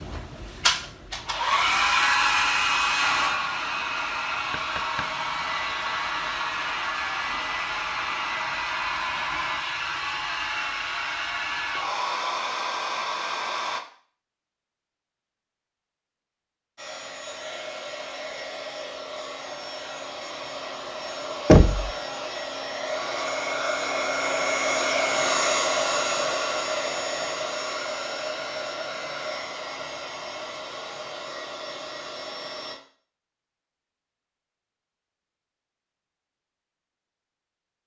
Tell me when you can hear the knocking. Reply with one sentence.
You can hear the knocking from 4.5 to 5.1 s and from 21.4 to 21.9 s.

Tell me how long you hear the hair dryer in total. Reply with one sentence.
The hair dryer can be heard for 30 seconds in total.